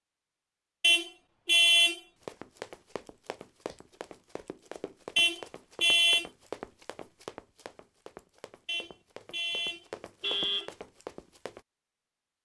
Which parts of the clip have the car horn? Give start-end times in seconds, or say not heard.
0.8-2.0, 5.2-6.2, 8.7-10.7.